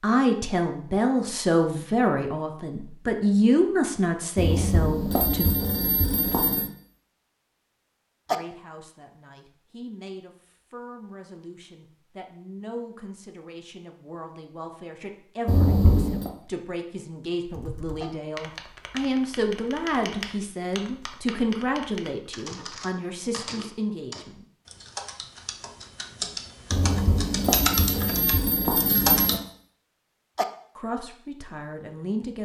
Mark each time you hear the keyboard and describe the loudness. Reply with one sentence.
You can hear the keyboard from 17.4 to 29.4 s, getting louder.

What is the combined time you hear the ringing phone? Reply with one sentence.
The ringing phone can be heard for 6 seconds in total.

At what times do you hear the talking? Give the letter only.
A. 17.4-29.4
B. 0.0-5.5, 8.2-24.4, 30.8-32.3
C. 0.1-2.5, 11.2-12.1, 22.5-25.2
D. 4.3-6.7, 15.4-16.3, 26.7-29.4
B.